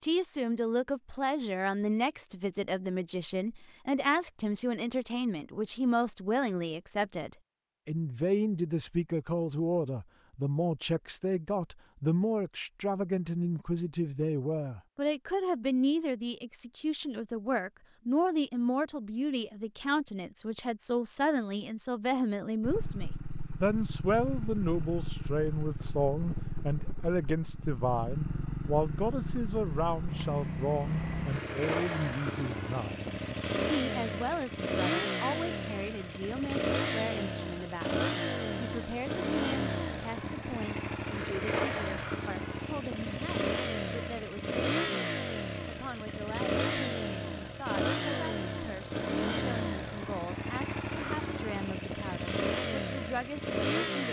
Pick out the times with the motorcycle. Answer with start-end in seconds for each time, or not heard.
22.6-54.0.